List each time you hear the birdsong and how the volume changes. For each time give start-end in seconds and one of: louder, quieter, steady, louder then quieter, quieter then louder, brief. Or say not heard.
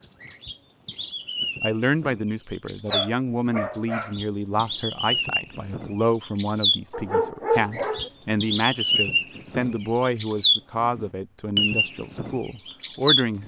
0.0-13.4 louder.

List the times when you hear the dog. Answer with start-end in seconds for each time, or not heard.
2.9-4.2, 6.9-8.1.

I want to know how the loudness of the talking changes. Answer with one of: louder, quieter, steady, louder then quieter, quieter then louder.
steady.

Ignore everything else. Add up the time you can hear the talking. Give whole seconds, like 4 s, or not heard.
12 s.